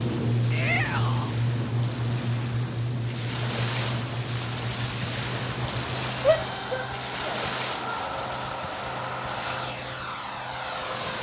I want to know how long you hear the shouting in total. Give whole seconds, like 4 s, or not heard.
3 s.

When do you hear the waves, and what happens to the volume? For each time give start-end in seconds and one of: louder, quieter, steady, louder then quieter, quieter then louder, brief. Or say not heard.
0.0-11.1 louder then quieter.